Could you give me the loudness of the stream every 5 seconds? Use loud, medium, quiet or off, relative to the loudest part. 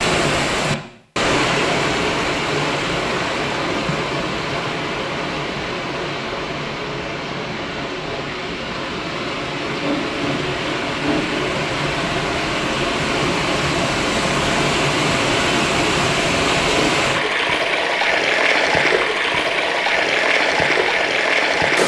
loud, medium, loud, loud, loud.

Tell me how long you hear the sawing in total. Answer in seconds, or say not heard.
2 s.